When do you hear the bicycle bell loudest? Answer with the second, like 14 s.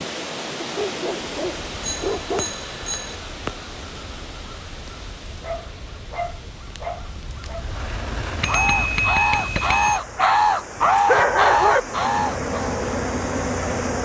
9 s.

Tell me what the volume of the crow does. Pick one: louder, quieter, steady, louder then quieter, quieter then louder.
quieter then louder.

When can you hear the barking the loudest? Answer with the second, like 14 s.
11 s.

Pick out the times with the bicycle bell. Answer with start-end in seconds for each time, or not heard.
1.8-3.1, 8.4-10.0.